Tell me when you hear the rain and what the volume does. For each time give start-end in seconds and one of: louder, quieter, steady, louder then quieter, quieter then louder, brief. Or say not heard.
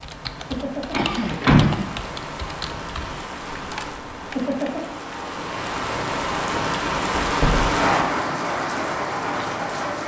0.0-10.0 louder.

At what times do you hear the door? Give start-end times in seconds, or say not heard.
0.9-1.8, 7.2-7.8.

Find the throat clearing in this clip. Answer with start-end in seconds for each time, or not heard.
0.9-1.9.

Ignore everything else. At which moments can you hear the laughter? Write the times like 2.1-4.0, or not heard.
not heard.